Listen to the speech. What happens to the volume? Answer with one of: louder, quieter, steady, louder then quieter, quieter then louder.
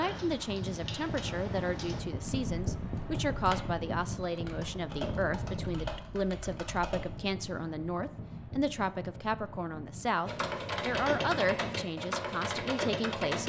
steady.